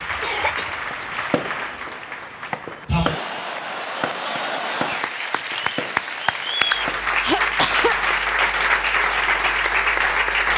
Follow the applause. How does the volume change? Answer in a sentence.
The loudness of the applause goes up.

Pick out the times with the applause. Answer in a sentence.
You can hear the applause from 0.0 to 10.5 s.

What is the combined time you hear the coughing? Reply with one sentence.
The coughing can be heard for 3 seconds in total.